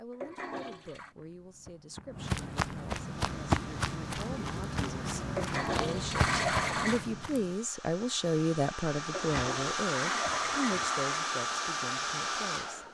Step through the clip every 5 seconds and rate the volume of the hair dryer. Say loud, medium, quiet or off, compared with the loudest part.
quiet, medium, loud.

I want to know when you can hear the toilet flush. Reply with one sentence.
The toilet flush can be heard from 0.1 to 1.1 s, from 5.3 to 7.0 s and from 9.1 to 11.2 s.